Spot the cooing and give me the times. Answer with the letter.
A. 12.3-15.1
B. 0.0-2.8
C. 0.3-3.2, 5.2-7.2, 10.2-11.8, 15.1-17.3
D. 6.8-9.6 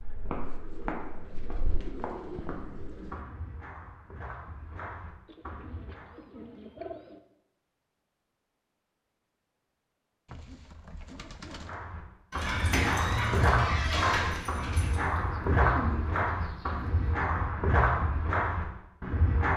C.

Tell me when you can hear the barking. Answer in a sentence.
You can hear the barking from 12.3 to 15.1 s.